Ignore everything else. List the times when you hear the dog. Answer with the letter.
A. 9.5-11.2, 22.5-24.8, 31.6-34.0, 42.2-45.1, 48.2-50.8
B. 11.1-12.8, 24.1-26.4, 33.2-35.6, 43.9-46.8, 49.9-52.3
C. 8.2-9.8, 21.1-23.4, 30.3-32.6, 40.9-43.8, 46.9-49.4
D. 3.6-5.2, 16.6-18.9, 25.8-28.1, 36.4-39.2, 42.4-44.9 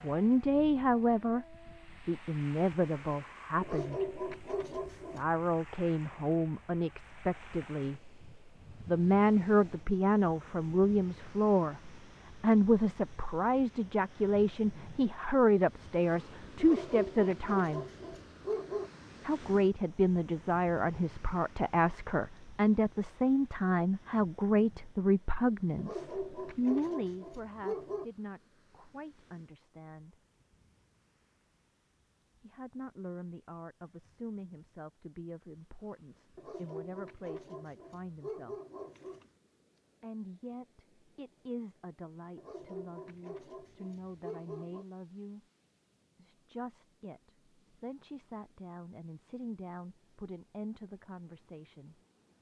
D.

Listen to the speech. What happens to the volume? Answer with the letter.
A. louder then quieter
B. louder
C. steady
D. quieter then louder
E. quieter
E.